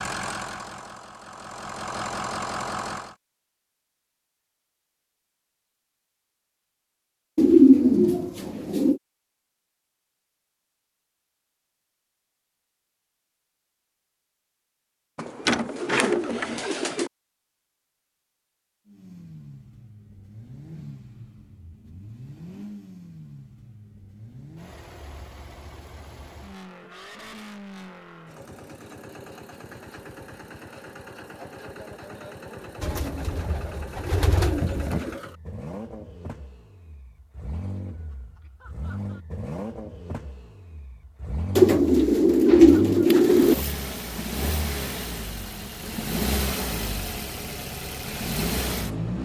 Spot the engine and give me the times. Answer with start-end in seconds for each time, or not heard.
0.0-3.1, 18.9-49.2.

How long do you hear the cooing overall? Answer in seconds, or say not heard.
8 s.